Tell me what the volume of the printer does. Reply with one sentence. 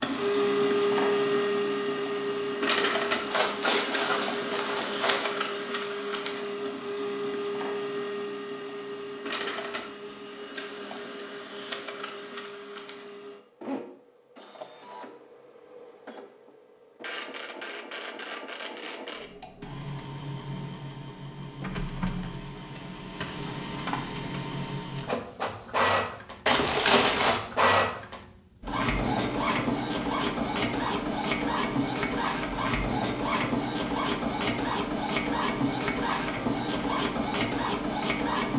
The volume of the printer goes down, then up.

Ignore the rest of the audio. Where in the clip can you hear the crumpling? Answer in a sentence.
The crumpling can be heard from 3.2 to 5.3 s and from 26.4 to 27.4 s.